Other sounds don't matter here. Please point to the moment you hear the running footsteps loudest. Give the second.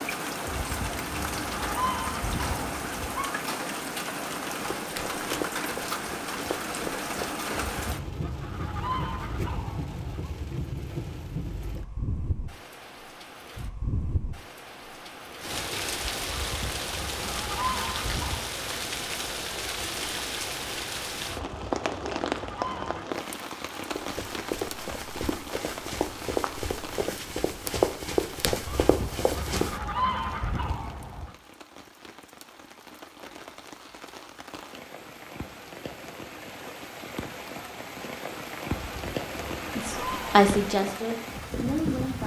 28 s.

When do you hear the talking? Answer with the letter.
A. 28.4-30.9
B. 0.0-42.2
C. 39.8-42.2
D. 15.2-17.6
C.